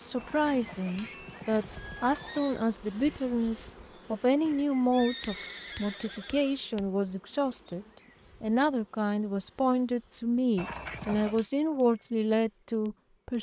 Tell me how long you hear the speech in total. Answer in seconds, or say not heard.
13 s.